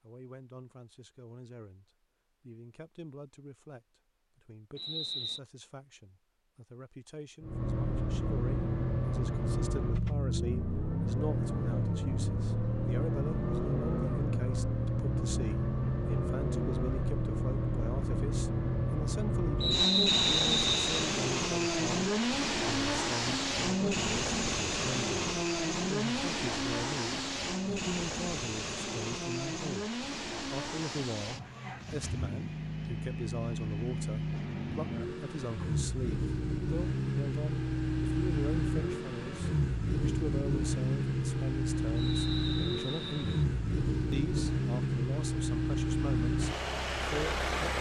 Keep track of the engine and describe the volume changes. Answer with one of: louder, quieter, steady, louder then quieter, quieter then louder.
steady.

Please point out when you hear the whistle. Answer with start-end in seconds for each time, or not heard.
4.8-5.4, 19.6-21.1, 42.0-43.5.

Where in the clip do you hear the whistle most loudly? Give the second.
20 s.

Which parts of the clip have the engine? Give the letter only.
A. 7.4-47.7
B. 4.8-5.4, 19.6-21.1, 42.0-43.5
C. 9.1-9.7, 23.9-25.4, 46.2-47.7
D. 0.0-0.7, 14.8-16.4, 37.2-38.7
A.